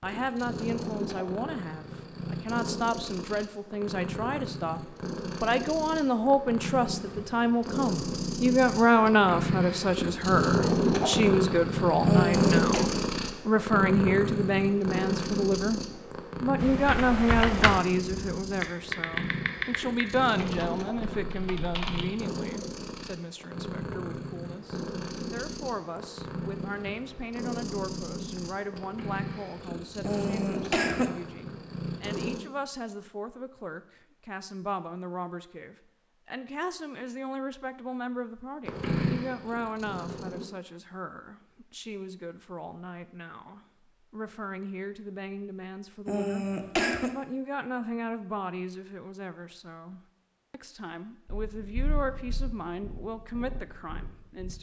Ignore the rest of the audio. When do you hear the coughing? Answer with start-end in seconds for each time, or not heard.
12.1-12.8, 30.0-31.1, 46.0-47.1.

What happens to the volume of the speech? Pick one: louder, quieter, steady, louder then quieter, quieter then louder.
quieter.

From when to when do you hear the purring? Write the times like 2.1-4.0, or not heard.
0.0-32.5, 38.6-40.5, 51.2-54.5.